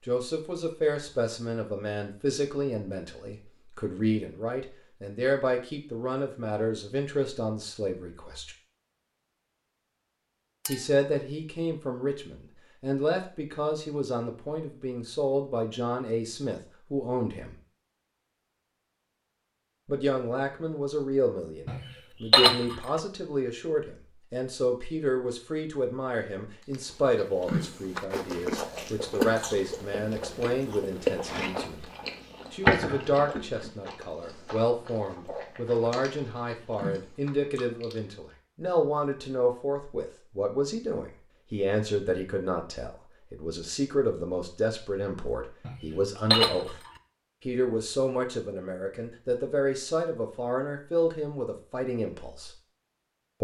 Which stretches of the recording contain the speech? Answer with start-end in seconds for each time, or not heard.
0.1-8.6, 10.7-17.6, 19.9-31.9, 32.5-46.8, 47.5-52.5.